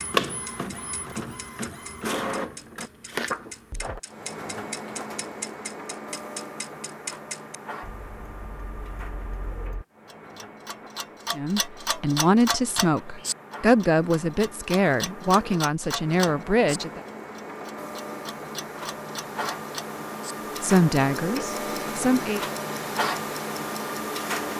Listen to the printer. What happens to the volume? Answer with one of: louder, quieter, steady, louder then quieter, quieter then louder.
quieter then louder.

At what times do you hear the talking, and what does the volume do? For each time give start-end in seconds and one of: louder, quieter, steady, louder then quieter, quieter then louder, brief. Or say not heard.
11.3-17.0 steady
20.6-22.4 brief.